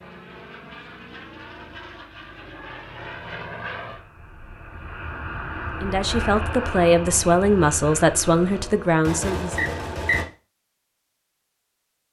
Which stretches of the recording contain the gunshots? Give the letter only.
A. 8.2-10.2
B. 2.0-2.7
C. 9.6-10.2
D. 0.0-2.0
A.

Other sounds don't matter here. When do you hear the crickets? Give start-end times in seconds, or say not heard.
not heard.